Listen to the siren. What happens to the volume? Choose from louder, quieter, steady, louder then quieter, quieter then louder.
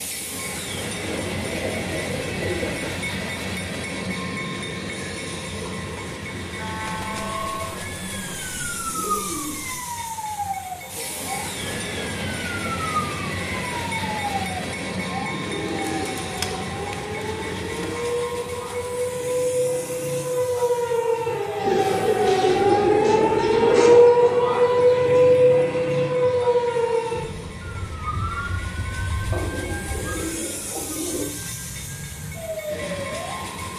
louder then quieter.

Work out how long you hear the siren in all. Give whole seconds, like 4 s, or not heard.
27 s.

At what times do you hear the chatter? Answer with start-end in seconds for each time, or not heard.
not heard.